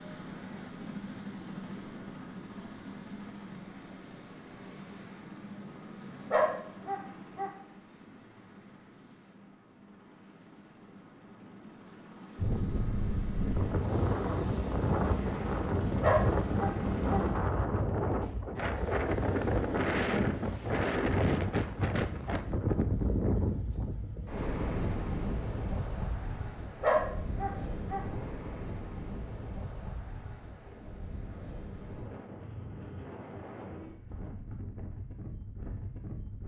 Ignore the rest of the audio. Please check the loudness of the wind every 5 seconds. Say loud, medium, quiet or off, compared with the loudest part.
off, off, loud, loud, loud, medium, quiet, quiet.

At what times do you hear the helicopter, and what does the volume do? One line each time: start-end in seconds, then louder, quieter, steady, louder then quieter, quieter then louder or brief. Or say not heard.
0.0-17.4 quieter then louder.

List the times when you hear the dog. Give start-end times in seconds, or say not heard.
6.3-7.5, 16.0-17.2, 26.8-28.0.